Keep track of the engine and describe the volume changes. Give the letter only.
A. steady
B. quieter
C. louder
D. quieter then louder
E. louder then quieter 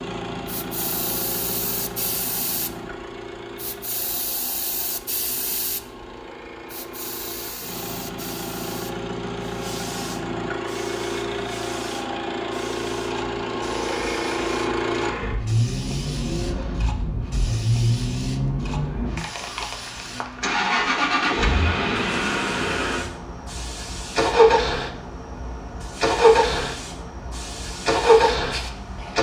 C.